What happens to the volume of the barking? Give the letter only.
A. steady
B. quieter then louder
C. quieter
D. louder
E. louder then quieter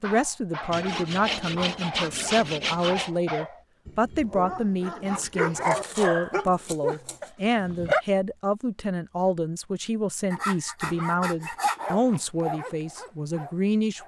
E.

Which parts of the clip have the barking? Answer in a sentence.
The barking can be heard from 0.0 to 8.1 s and from 10.9 to 14.0 s.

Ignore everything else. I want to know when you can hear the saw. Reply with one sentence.
The saw can be heard from 0.7 to 3.1 s, from 5.5 to 7.3 s and from 10.3 to 11.9 s.